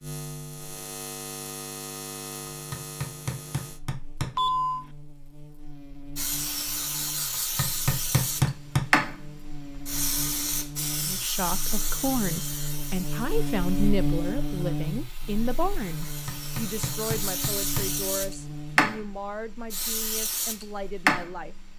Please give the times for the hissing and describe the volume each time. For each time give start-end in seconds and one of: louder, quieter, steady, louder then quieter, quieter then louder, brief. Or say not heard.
6.2-21.4 quieter then louder.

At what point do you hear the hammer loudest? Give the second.
8 s.